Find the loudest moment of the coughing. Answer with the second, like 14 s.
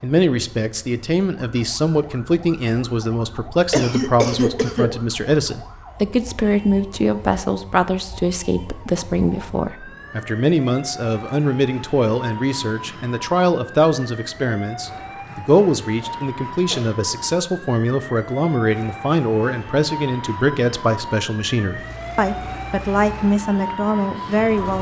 4 s.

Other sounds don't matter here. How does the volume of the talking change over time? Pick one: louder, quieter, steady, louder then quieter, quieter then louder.
steady.